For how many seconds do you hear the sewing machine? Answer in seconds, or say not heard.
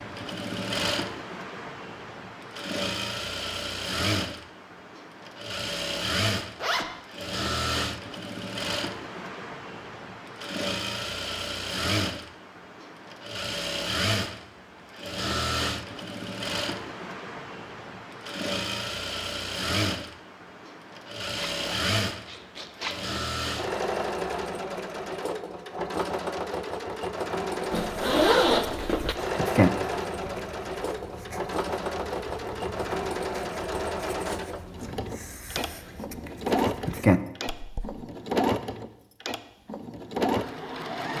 41 s.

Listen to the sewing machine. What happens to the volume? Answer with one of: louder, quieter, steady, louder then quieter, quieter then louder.
steady.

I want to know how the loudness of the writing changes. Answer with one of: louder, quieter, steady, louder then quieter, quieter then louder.
quieter then louder.